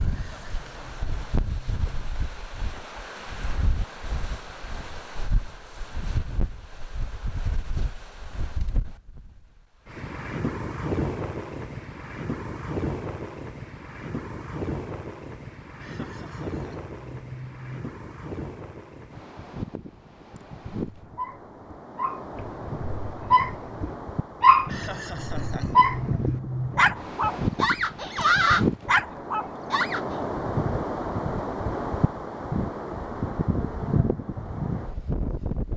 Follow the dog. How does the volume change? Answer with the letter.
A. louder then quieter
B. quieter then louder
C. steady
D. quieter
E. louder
E.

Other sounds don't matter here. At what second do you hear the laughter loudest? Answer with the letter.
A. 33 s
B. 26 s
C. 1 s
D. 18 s
B.